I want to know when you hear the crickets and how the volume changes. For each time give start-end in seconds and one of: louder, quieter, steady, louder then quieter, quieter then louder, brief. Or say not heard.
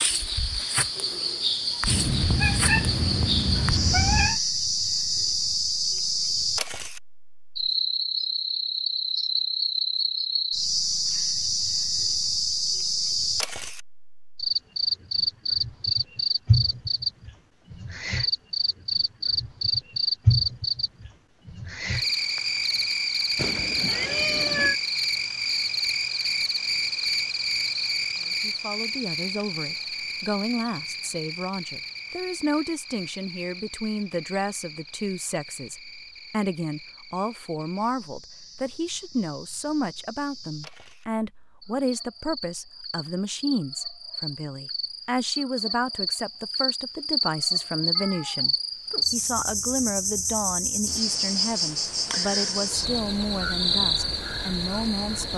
0.0-55.3 quieter then louder.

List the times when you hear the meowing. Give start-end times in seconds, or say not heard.
1.9-4.4, 23.4-24.8, 48.0-49.0.